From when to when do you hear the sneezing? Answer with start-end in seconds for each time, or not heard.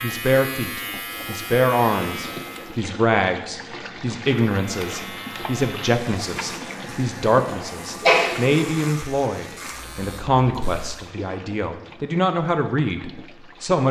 7.5-8.3.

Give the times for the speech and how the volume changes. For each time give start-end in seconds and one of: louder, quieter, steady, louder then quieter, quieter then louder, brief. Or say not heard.
0.0-13.8 steady.